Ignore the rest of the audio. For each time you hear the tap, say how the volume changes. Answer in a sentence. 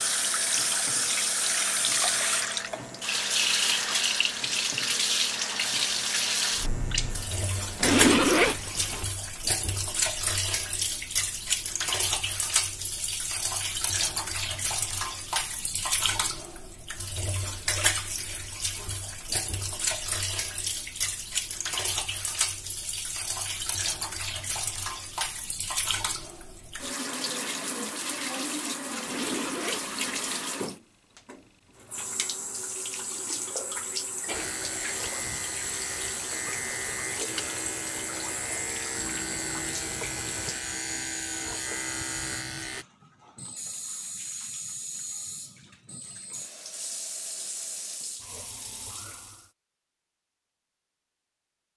The tap can be heard from 0.0 to 49.5 s, getting quieter.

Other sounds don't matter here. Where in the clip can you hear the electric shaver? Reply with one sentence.
You can hear the electric shaver from 0.0 to 7.9 s and from 34.3 to 42.9 s.